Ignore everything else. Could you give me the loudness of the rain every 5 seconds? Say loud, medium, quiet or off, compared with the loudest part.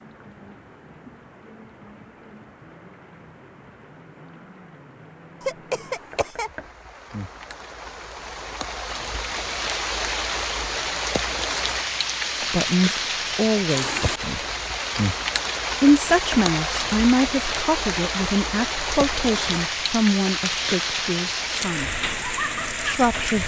quiet, medium, loud, loud, loud.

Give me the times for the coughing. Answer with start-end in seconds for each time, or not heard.
5.4-6.5.